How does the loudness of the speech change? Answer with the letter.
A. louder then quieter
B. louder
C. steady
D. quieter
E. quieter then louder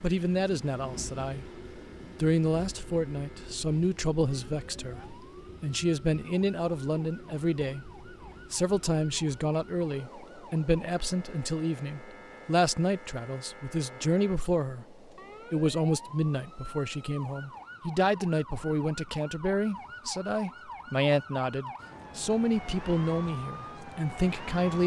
C.